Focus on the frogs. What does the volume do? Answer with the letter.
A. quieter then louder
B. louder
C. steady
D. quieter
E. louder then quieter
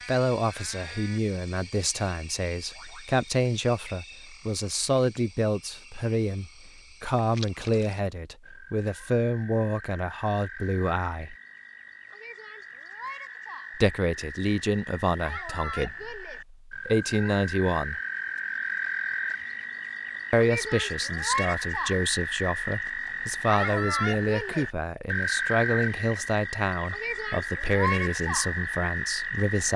B.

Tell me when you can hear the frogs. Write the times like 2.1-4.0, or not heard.
0.0-29.7.